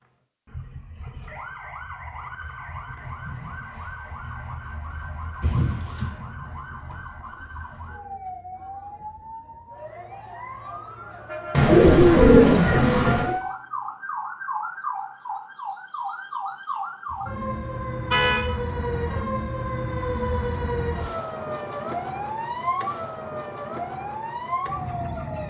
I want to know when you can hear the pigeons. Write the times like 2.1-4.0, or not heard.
11.5-13.3.